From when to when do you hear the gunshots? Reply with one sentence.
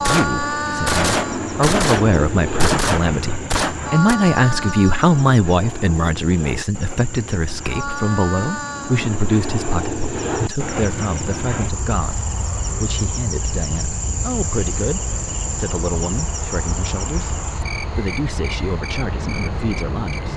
The gunshots can be heard from 0.0 to 4.2 s.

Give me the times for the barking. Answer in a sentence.
The barking can't be heard in this clip.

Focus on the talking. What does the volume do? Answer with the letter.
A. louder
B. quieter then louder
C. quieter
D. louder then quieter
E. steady
C.